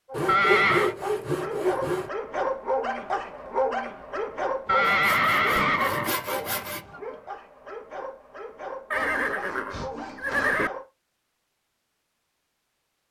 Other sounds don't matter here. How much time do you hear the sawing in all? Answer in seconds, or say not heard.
6 s.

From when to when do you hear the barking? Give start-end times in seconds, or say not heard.
0.1-10.8.